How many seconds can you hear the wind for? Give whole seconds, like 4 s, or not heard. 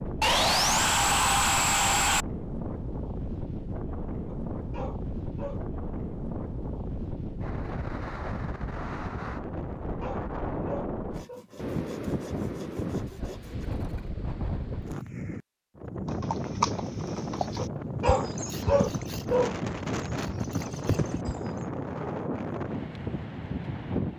24 s.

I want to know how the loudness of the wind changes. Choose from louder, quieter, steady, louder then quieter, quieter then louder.
steady.